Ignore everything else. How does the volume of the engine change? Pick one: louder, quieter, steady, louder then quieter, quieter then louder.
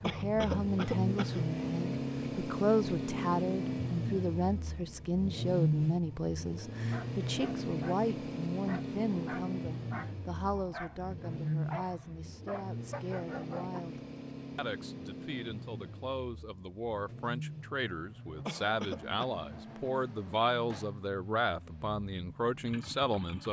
quieter.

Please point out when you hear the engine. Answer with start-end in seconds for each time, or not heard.
0.0-23.4.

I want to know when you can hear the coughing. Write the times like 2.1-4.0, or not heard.
0.0-1.4, 18.4-19.2.